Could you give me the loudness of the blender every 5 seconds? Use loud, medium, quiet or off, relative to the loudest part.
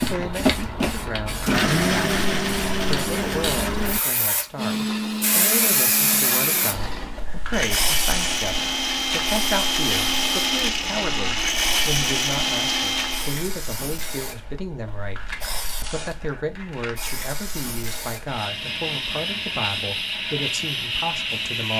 loud, loud, loud, off, off.